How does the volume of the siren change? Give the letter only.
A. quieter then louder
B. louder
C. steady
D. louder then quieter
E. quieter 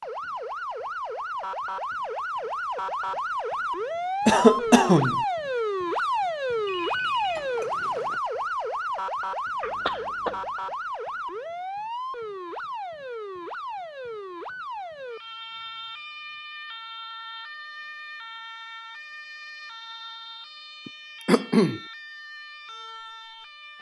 E.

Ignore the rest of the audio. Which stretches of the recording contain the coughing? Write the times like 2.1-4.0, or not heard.
4.2-5.2, 9.6-10.4, 20.9-21.8.